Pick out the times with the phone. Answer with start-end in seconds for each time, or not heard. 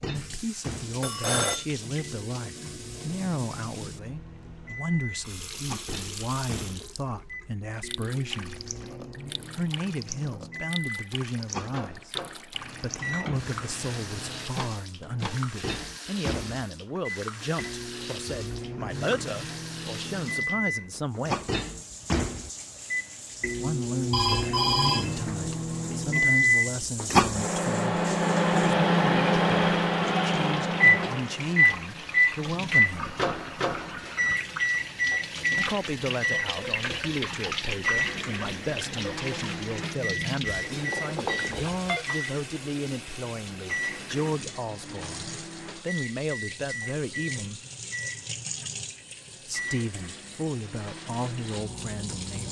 1.0-1.6, 24.1-25.6, 40.7-42.0.